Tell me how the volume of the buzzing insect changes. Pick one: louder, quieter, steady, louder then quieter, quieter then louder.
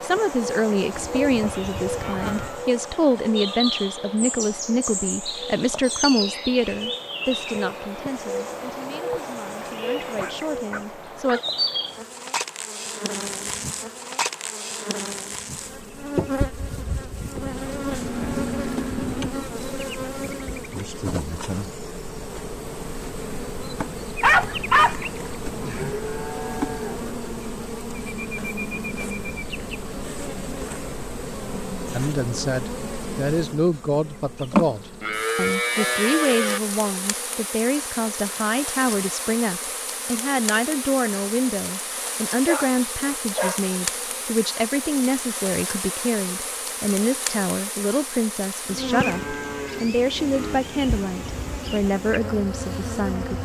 steady.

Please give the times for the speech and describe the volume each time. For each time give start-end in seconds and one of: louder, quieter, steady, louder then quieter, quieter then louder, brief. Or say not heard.
0.0-11.4 quieter
31.9-53.3 steady.